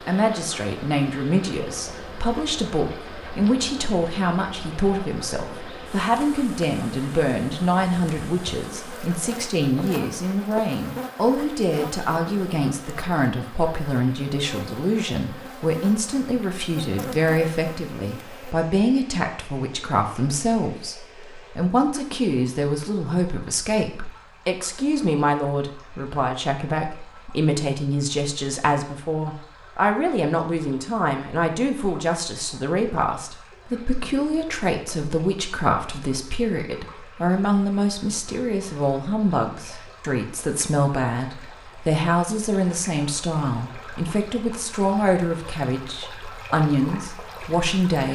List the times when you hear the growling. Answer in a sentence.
The growling can't be heard in this clip.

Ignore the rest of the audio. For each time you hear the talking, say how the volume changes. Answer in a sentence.
The talking can be heard from 0.1 to 48.0 s, at a steady volume.